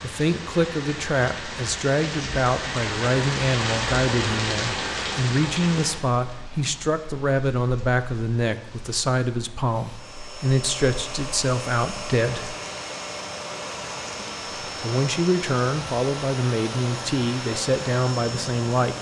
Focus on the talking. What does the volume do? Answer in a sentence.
The volume of the talking stays about the same.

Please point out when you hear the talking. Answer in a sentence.
You can hear the talking from 0.0 to 12.6 s and from 14.8 to 18.9 s.